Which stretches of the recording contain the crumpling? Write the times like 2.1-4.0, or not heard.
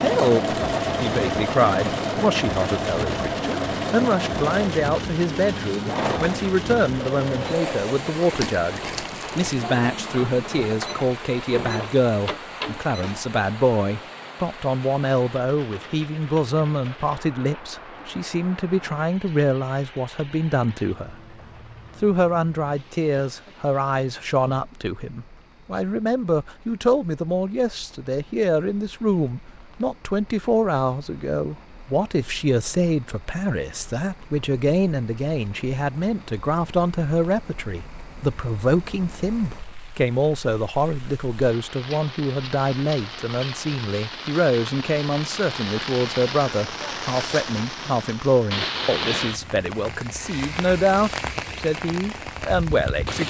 8.3-9.6.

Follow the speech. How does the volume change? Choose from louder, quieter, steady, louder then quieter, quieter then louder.
steady.